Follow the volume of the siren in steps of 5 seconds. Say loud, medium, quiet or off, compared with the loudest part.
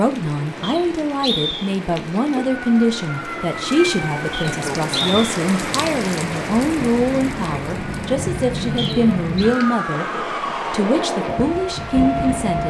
medium, loud, loud.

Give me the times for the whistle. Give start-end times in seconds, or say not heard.
0.6-1.8, 4.3-5.2, 8.8-9.4.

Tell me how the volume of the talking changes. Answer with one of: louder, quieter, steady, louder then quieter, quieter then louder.
steady.